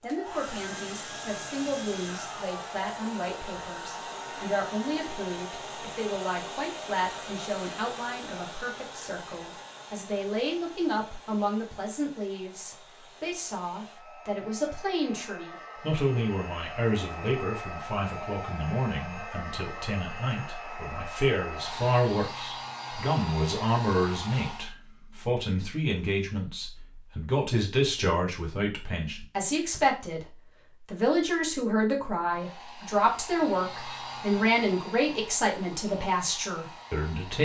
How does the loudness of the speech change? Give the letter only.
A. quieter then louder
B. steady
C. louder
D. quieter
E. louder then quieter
C.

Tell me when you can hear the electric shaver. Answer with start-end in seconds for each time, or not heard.
not heard.